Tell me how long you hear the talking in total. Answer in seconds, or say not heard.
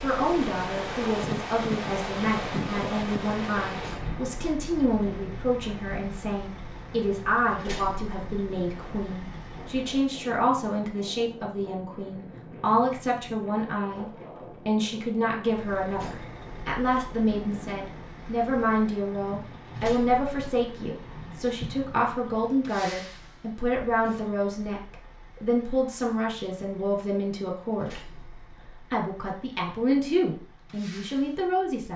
31 s.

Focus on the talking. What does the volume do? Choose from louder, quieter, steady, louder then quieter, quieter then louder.
steady.